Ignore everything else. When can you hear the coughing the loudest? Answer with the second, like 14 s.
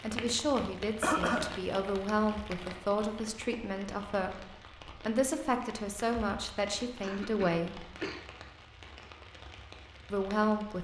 1 s.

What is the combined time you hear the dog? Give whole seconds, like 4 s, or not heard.
not heard.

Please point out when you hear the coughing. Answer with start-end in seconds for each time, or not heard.
1.0-1.6, 7.0-8.2.